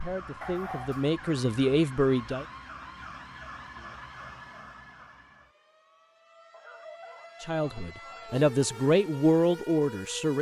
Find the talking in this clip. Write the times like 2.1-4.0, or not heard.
0.0-2.5, 7.4-10.3.